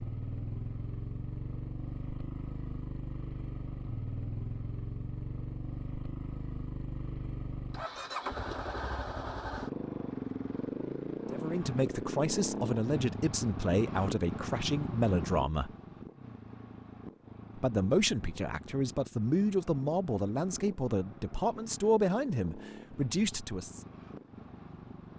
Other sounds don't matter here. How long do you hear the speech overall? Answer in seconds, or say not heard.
11 s.